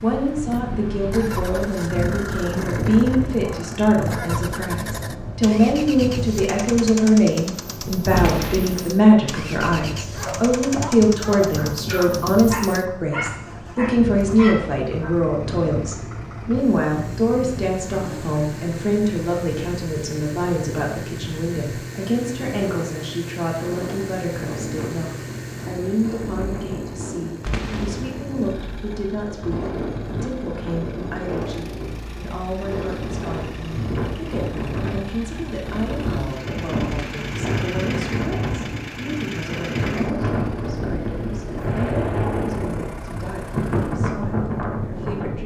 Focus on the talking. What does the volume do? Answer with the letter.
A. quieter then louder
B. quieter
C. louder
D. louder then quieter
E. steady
B.